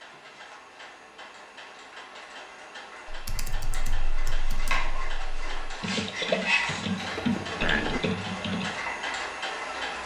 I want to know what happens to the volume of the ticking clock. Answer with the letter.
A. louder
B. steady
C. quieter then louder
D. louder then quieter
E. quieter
A.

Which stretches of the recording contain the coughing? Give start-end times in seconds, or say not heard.
7.0-8.1.